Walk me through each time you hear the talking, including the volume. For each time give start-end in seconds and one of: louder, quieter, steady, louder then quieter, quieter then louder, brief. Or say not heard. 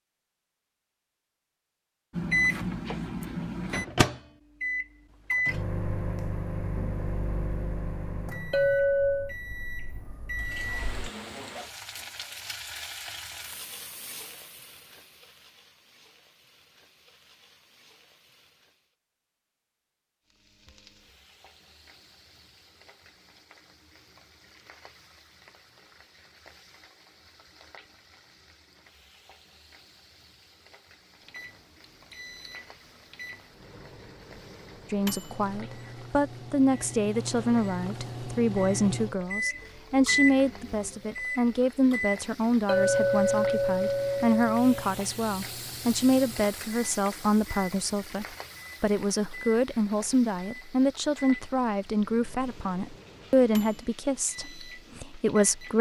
34.9-55.7 steady.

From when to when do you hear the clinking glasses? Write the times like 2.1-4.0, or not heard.
8.5-9.3, 42.6-44.9.